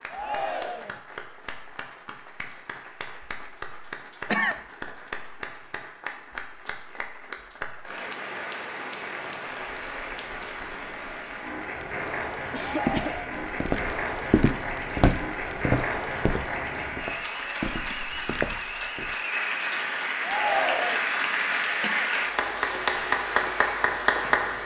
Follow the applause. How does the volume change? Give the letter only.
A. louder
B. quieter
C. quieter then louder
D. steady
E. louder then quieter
A.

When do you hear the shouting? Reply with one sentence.
You can hear the shouting from 0.1 to 1.0 s, from 12.6 to 13.4 s and from 20.2 to 21.0 s.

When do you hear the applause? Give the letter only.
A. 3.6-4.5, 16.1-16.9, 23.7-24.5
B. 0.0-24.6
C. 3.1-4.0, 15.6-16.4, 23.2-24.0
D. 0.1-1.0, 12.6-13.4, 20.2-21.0
B.